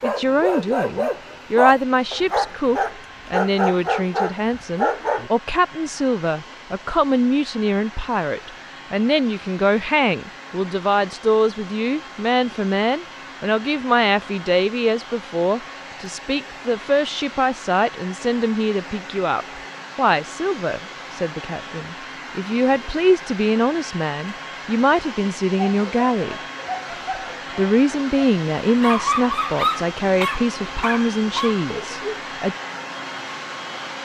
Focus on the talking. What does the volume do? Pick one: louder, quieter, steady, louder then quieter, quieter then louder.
steady.